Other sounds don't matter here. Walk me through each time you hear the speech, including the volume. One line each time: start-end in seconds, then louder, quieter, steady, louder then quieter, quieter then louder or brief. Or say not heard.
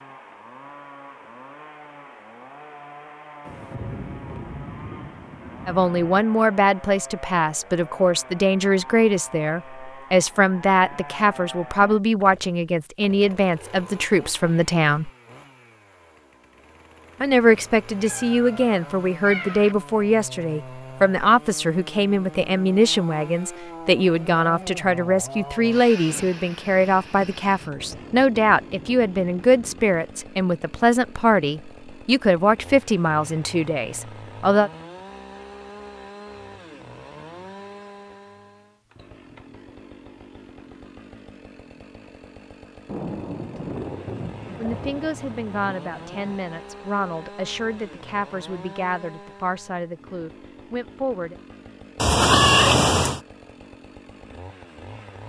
5.7-15.1 steady
17.2-34.7 steady
44.5-51.4 steady.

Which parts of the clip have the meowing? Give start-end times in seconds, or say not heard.
17.5-19.8, 52.0-53.2.